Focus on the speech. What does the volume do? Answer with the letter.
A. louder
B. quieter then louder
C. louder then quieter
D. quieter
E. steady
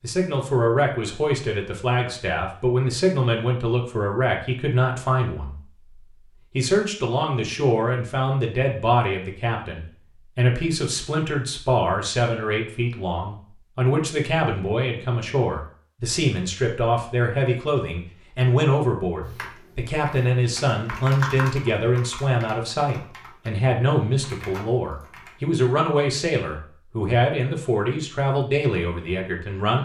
E.